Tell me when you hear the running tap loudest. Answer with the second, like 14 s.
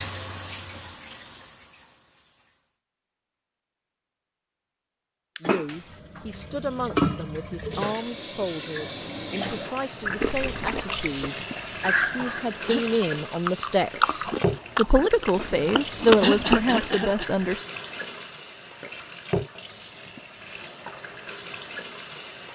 7 s.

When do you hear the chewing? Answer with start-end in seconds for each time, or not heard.
10.1-17.5.